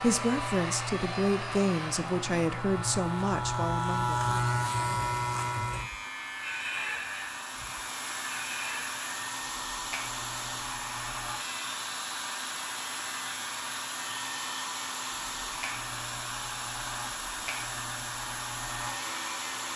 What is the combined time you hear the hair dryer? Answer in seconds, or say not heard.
20 s.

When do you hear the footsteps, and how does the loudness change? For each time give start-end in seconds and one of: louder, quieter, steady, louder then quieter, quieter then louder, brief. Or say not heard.
not heard.